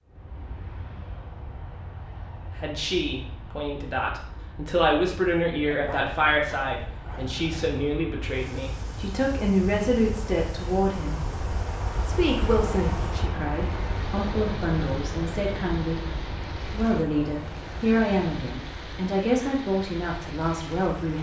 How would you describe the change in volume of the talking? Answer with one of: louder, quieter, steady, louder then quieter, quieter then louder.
steady.